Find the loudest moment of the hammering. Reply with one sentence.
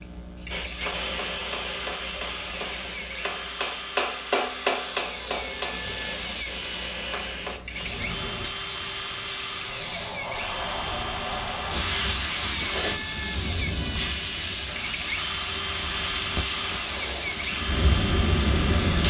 The volume of the hammering peaks at 5 seconds.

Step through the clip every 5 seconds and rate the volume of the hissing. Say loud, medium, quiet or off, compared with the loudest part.
medium, medium, loud, loud.